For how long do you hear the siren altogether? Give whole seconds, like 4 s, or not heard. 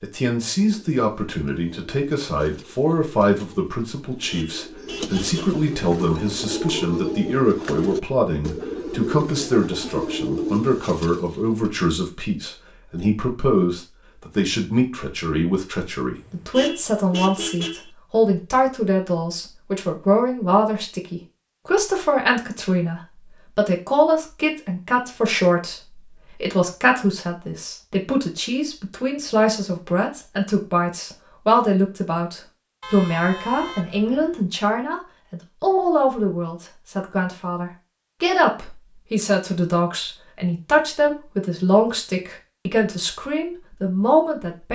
not heard.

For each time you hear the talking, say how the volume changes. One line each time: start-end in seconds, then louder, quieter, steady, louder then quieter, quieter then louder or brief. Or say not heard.
0.0-44.7 steady.